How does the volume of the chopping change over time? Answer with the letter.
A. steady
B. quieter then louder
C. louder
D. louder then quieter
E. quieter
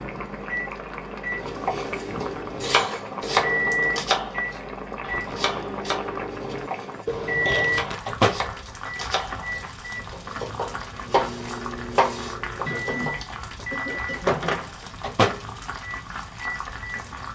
B.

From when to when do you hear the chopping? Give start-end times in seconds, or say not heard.
1.6-13.2.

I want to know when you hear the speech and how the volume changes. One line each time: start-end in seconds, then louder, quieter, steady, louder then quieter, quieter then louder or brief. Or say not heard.
not heard.